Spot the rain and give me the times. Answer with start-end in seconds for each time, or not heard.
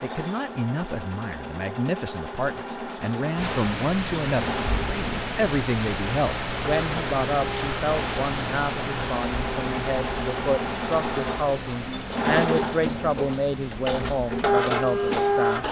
3.4-15.6.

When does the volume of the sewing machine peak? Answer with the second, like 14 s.
15 s.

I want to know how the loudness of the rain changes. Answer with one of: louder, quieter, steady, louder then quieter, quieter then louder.
quieter.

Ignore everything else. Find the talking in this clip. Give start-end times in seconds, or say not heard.
0.0-15.6.